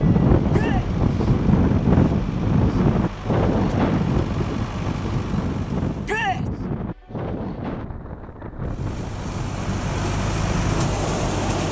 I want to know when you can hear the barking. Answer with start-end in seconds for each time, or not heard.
not heard.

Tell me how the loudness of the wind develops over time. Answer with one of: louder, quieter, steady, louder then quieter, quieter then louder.
quieter.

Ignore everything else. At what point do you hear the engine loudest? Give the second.
11 s.